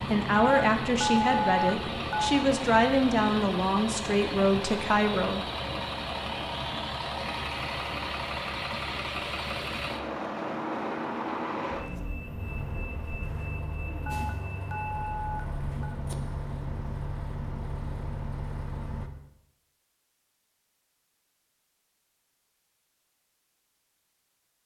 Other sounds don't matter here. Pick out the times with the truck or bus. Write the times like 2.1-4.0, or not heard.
0.0-19.1.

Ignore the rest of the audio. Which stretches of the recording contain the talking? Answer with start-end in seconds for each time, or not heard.
0.1-5.5.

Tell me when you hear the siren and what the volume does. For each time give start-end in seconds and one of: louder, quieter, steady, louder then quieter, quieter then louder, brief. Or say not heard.
not heard.